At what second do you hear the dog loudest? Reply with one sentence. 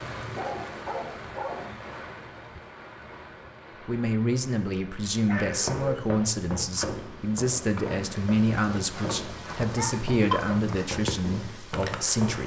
The loudest moment of the dog is at 10 seconds.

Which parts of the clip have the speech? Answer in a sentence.
The speech can be heard from 3.9 to 12.4 s.